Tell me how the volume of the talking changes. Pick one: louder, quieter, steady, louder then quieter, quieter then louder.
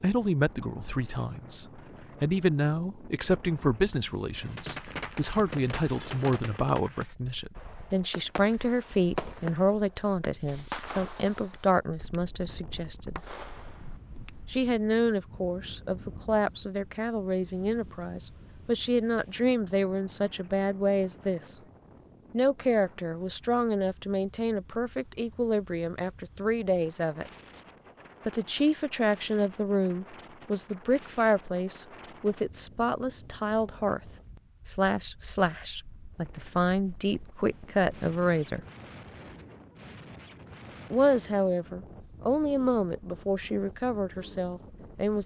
steady.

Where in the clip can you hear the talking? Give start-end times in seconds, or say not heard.
0.0-13.2, 14.5-21.6, 22.3-27.3, 28.2-34.0, 34.6-38.6, 40.9-45.2.